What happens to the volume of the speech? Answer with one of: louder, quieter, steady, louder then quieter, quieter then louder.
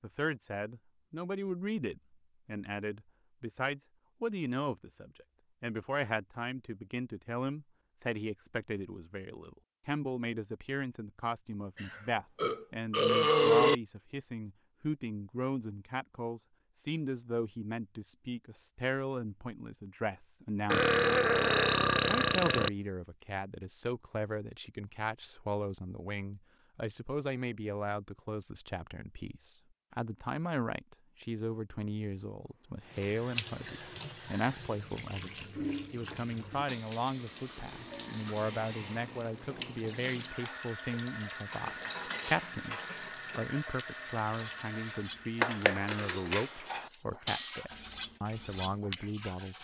steady.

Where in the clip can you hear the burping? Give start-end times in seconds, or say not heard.
11.8-13.8, 20.7-22.7, 37.5-39.3.